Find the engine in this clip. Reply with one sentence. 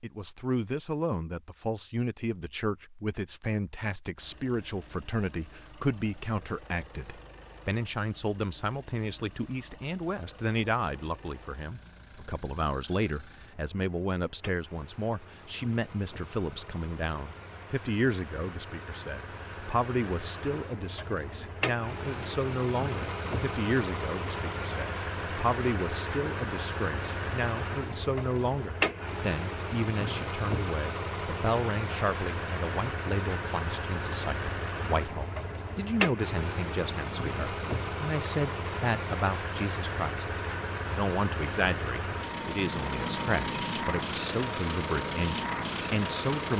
The engine can be heard from 4.2 to 46.5 s.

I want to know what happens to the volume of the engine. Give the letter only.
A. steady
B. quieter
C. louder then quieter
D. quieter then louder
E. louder
E.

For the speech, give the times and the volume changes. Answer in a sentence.
You can hear the speech from 0.0 to 46.5 s, at a steady volume.